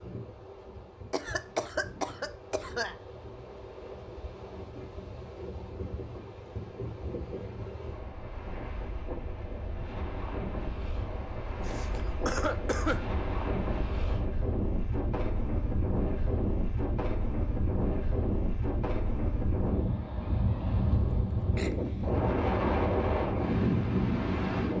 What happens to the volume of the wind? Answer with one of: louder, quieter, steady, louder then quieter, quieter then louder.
louder.